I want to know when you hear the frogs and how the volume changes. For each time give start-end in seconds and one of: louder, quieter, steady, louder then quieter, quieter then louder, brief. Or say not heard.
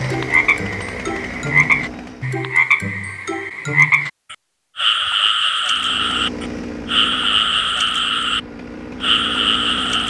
0.0-8.4 steady
9.0-10.0 brief.